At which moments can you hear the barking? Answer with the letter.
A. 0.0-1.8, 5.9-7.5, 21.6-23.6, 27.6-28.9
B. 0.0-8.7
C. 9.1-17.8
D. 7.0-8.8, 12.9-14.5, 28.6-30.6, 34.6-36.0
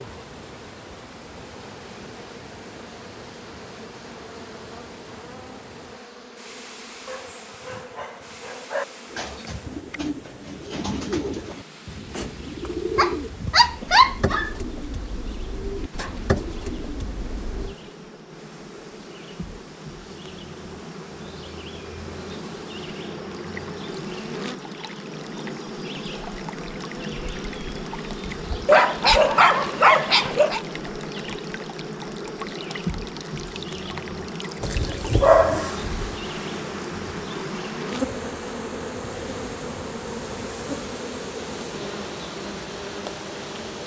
D.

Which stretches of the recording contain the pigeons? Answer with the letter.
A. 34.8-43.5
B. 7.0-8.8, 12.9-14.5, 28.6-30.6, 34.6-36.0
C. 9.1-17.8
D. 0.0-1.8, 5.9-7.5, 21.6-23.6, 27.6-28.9
C.